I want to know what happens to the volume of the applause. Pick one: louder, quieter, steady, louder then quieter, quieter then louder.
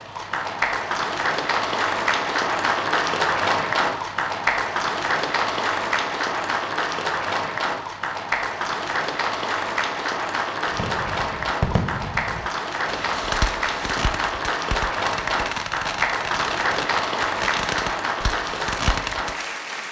steady.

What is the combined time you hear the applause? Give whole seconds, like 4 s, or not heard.
20 s.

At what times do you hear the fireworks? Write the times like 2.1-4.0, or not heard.
10.7-19.4.